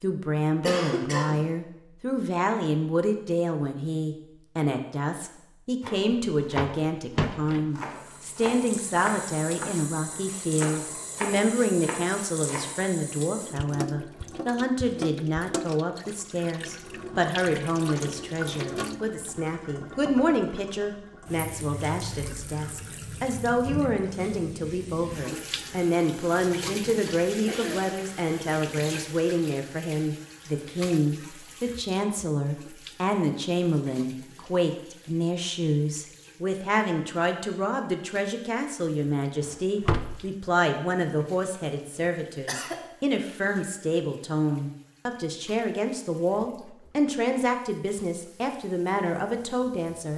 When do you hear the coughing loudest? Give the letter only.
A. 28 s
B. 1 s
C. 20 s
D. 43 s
B.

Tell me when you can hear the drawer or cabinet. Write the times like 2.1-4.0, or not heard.
5.8-7.7, 39.4-40.2.